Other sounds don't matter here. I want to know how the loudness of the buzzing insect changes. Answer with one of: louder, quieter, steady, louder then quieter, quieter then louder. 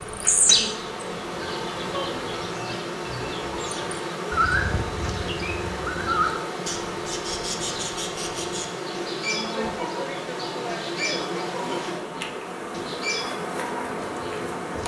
steady.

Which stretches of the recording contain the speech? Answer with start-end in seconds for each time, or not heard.
not heard.